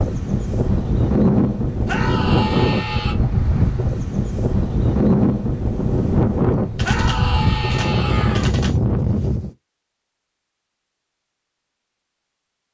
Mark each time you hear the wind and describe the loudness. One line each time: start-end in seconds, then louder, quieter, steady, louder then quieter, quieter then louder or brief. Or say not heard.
0.0-9.5 steady.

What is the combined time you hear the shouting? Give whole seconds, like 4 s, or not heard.
3 s.